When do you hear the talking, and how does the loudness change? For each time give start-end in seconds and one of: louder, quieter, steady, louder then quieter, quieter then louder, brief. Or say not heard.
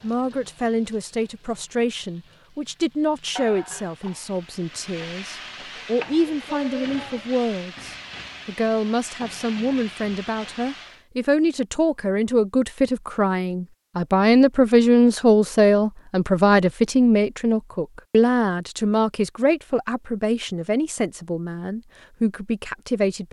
0.0-23.2 louder then quieter.